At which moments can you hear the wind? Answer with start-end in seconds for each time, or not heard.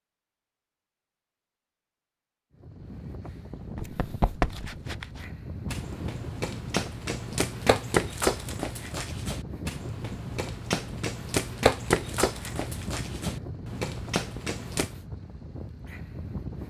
2.5-16.6.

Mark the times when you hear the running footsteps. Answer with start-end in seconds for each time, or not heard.
3.8-14.9.